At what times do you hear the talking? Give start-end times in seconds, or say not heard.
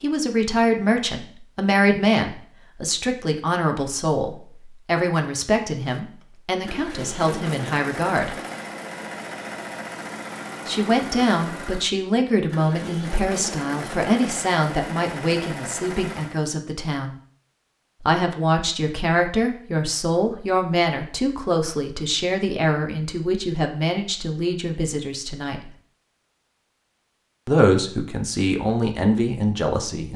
0.0-8.3, 10.7-17.1, 18.0-25.6, 27.4-30.1.